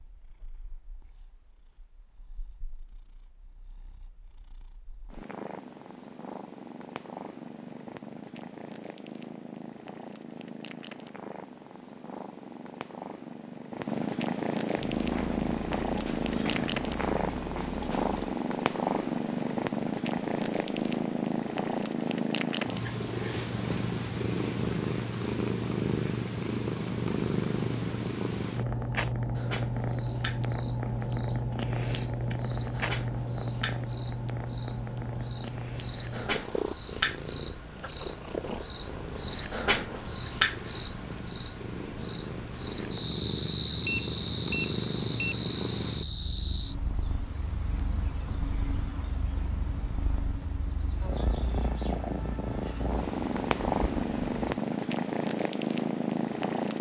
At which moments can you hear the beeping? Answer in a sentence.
You can hear the beeping from 43.9 to 45.4 s.